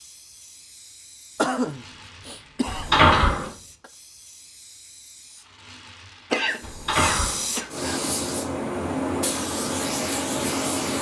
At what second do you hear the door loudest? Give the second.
3 s.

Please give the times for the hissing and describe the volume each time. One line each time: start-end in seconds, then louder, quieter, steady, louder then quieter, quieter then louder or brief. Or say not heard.
0.0-10.9 louder.